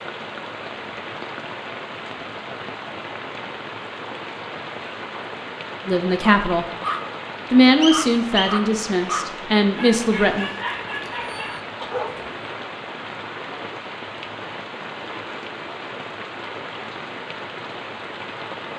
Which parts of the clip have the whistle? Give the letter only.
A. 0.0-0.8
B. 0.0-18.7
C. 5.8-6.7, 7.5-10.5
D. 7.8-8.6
D.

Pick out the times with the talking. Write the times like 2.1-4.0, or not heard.
5.8-6.7, 7.5-10.5.